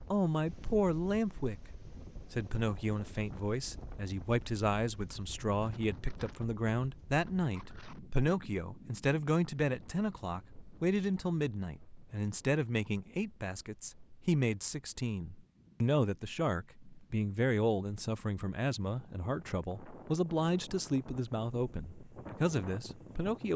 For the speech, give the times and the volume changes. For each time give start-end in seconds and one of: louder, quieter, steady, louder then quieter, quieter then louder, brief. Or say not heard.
0.0-23.5 steady.